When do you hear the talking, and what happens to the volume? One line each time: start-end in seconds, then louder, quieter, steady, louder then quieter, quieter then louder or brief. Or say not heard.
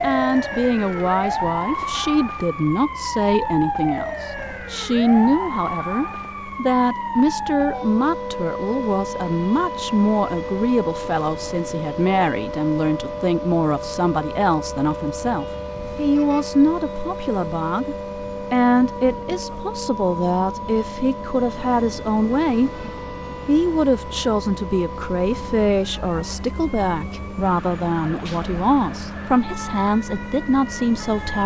0.0-22.7 steady
23.4-31.4 steady.